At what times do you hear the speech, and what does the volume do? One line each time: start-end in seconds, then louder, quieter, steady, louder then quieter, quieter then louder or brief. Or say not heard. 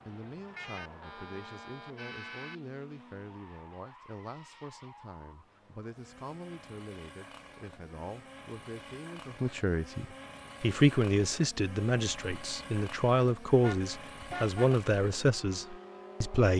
0.1-16.5 louder.